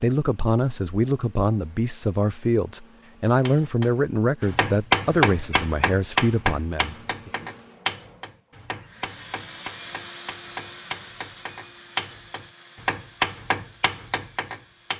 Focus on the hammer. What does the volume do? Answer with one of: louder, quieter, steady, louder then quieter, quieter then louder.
quieter then louder.